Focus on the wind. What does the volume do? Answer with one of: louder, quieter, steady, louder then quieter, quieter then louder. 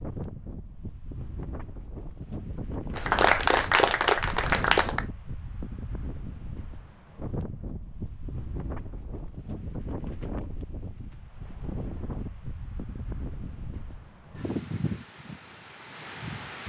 steady.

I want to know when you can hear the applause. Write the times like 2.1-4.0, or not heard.
3.0-5.0.